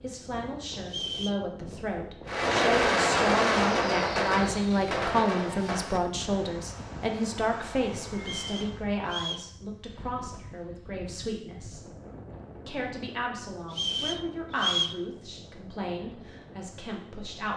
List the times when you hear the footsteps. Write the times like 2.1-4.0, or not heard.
not heard.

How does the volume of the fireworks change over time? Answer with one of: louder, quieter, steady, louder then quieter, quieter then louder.
quieter.